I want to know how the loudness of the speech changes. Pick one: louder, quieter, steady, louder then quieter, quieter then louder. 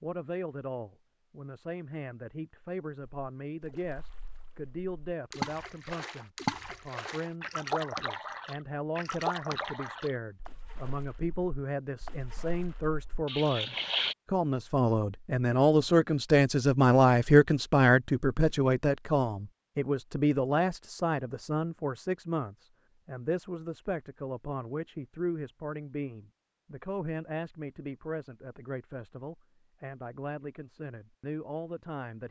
louder then quieter.